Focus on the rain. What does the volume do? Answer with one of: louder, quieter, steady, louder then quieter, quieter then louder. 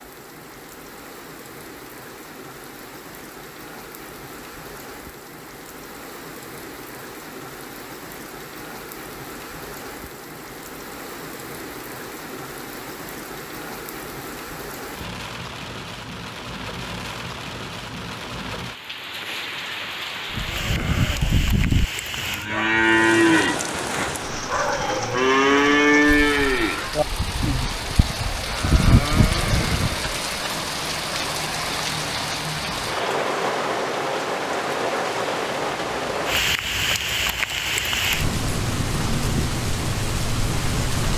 louder.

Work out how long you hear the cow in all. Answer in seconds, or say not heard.
10 s.